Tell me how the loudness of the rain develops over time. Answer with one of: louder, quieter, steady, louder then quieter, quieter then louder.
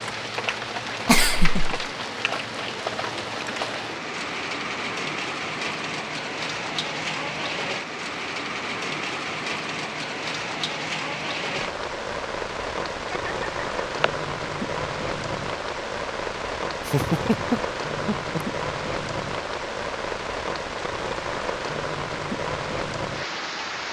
steady.